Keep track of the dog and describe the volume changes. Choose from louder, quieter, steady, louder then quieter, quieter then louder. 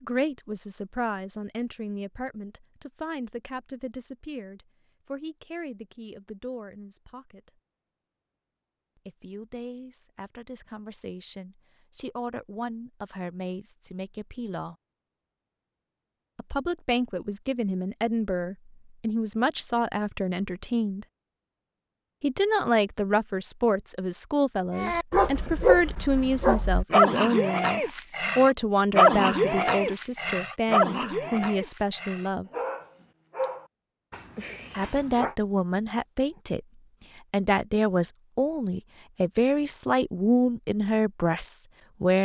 quieter.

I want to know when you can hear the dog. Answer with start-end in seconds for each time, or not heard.
24.8-35.3.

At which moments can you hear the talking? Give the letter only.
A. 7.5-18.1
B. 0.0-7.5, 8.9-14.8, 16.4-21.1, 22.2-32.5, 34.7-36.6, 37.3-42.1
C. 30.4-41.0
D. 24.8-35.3
B.